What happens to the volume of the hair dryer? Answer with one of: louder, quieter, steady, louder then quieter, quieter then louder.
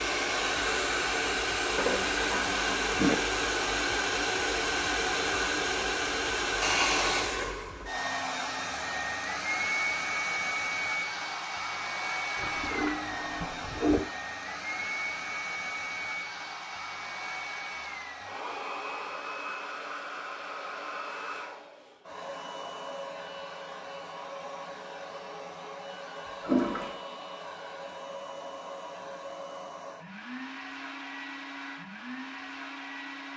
quieter.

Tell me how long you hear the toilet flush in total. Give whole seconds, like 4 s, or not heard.
4 s.